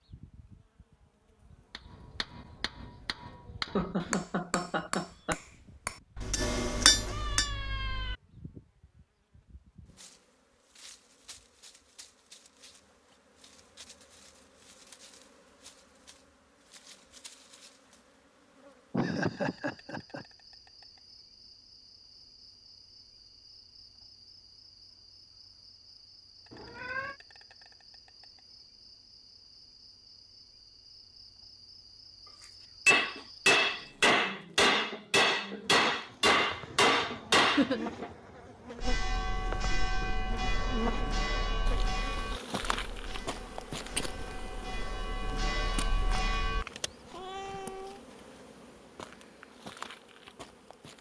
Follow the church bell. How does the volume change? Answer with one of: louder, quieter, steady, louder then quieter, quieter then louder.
quieter then louder.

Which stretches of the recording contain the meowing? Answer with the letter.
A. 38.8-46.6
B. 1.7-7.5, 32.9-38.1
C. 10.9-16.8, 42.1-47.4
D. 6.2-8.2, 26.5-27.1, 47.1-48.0
D.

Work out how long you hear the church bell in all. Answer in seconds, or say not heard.
8 s.